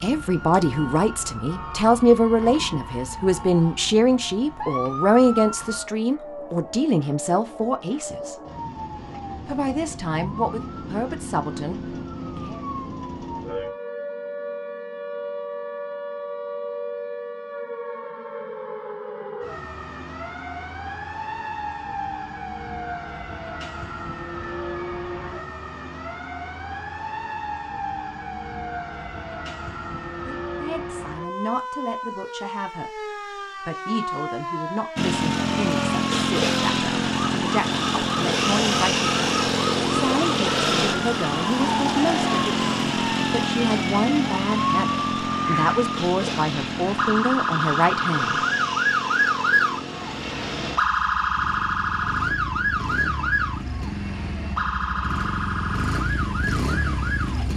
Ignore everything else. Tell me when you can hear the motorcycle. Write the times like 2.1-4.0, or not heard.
35.0-57.5.